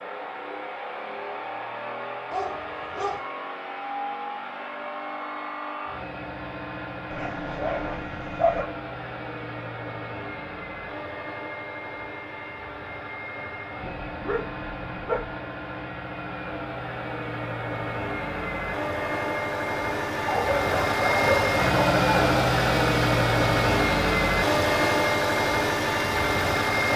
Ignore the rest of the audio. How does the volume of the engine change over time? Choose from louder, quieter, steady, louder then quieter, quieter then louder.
louder.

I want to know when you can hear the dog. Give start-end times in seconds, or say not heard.
2.3-3.2, 7.1-8.7, 13.8-15.3, 20.2-22.4.